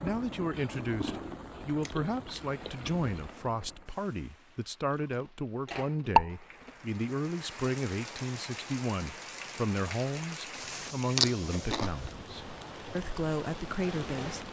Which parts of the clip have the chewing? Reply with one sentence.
The chewing can be heard from 0.5 to 3.0 s, from 4.9 to 6.8 s and from 10.5 to 12.1 s.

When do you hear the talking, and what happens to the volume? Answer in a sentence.
The talking can be heard from 0.0 to 14.4 s, at a steady volume.